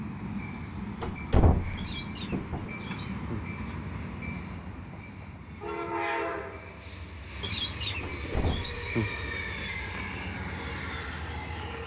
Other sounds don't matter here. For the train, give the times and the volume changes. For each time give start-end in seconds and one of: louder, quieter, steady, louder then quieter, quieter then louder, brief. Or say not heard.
0.0-11.8 steady.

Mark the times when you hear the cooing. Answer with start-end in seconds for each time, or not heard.
1.8-3.5, 7.4-9.4.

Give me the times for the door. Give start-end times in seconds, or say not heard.
1.0-2.7, 8.0-8.8.